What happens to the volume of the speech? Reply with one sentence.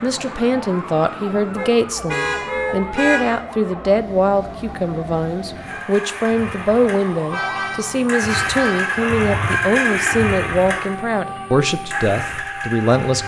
The loudness of the speech stays about the same.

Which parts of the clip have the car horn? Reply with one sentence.
You can hear the car horn from 1.6 to 3.4 s and from 7.3 to 9.0 s.